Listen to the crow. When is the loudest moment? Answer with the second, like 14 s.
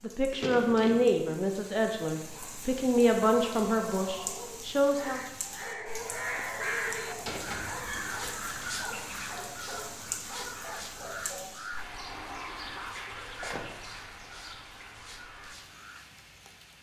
7 s.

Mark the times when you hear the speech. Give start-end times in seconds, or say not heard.
0.0-5.2.